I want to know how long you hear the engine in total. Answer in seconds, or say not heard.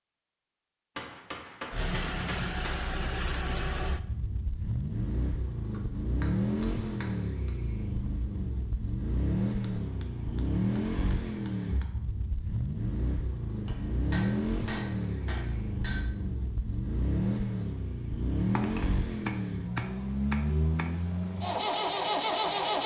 21 s.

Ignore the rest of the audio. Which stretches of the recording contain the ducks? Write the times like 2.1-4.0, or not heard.
not heard.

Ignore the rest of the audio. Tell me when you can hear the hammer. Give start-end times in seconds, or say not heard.
0.9-2.9, 5.7-7.5, 9.6-11.9, 13.7-16.1, 18.6-20.9.